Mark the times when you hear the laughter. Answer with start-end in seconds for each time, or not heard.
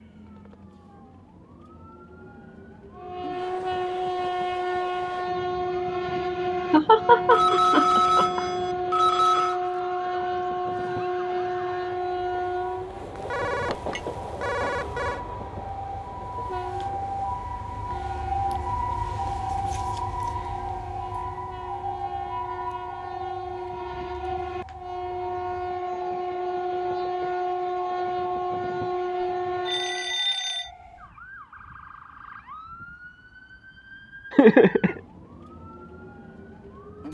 6.7-8.4, 34.3-35.0.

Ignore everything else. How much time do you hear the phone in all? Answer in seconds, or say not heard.
5 s.